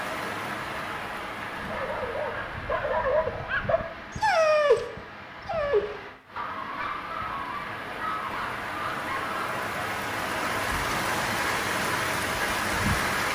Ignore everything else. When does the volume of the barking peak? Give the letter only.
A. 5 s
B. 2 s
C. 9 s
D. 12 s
A.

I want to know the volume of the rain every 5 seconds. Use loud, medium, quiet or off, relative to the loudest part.
medium, medium, loud.